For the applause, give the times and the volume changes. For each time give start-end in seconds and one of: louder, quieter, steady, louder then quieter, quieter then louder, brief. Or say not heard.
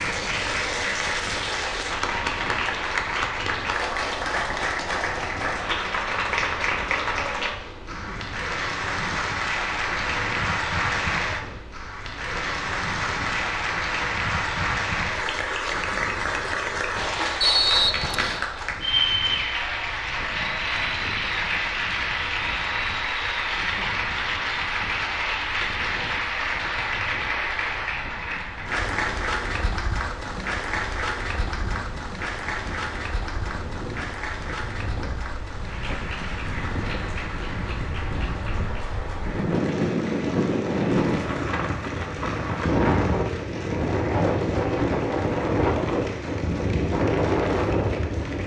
0.0-48.4 quieter.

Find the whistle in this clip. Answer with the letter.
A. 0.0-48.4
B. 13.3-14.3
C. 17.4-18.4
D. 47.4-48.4
C.